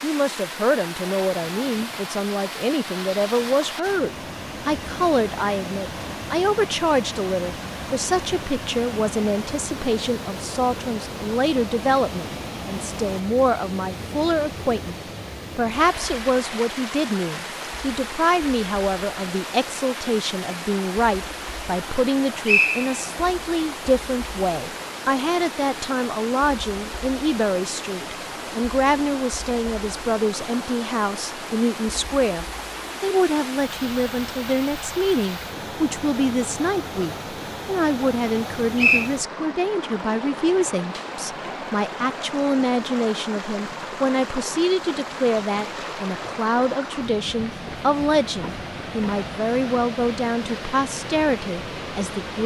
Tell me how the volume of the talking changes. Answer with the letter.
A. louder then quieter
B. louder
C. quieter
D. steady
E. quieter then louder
D.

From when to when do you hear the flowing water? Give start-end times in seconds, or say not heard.
0.0-52.4.